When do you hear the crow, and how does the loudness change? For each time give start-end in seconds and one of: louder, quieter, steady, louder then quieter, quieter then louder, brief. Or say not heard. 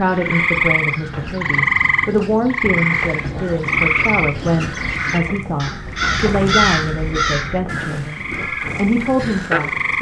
0.0-9.7 louder then quieter.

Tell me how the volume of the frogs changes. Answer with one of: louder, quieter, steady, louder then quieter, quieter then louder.
quieter then louder.